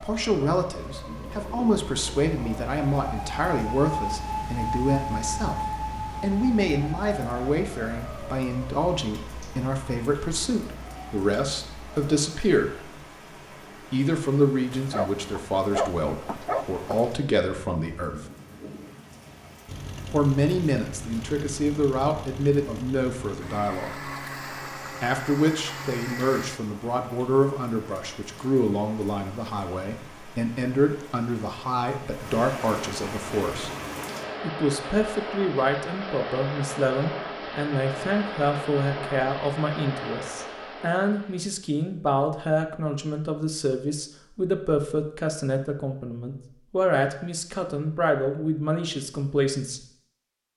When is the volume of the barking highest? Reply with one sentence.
The volume of the barking peaks at 16 seconds.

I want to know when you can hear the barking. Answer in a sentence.
The barking can be heard from 14.7 to 17.1 s.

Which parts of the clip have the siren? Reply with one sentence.
The siren can be heard from 0.0 to 12.2 s.